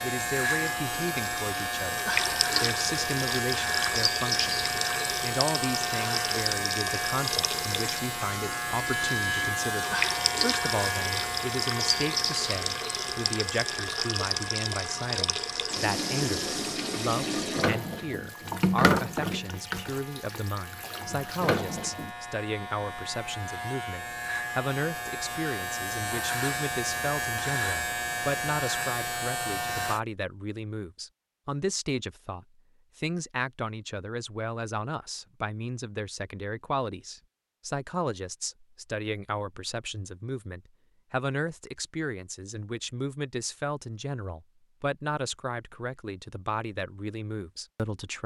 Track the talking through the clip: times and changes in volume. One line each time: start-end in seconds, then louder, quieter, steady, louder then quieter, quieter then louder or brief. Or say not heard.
0.0-48.2 steady.